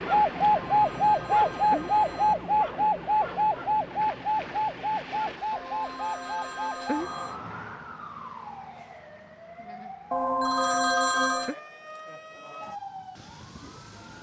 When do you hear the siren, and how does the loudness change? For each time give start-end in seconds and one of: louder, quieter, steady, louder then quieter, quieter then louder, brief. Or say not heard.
0.0-14.1 quieter.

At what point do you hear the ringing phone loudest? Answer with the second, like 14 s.
11 s.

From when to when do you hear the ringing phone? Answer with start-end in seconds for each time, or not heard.
0.4-2.4, 5.5-7.3, 10.1-11.6.